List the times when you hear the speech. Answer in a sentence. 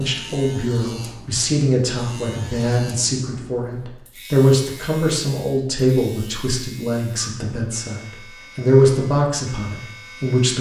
You can hear the speech from 0.0 to 10.5 s.